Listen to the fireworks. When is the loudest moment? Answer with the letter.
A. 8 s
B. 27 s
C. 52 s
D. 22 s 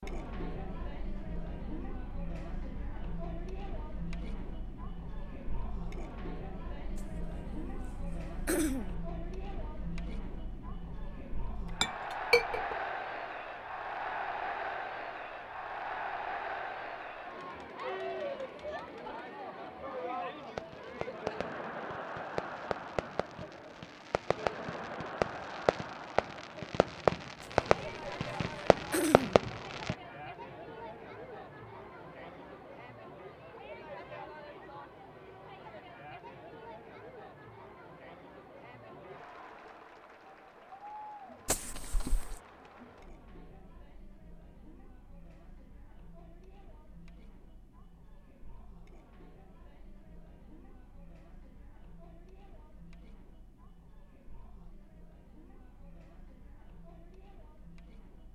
B.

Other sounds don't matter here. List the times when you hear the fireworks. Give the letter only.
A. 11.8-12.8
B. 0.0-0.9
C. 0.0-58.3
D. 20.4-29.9
D.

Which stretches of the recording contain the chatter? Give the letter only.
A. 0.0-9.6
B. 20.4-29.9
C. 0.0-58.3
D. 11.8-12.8
C.